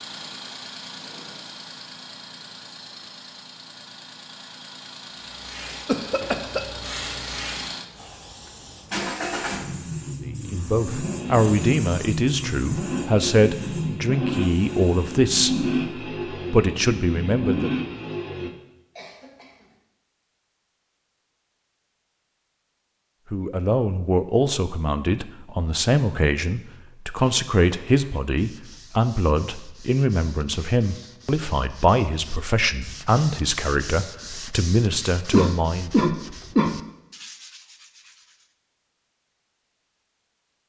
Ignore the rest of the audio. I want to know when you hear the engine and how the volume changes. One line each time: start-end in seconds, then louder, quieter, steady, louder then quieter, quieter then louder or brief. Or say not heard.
0.0-18.5 louder.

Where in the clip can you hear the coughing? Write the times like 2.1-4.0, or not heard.
5.8-6.6, 18.9-19.6, 35.3-36.8.